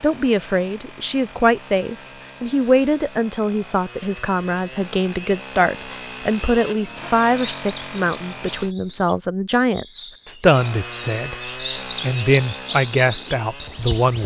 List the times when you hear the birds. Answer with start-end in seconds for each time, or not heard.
7.2-14.2.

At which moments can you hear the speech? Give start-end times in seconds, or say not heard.
0.0-14.2.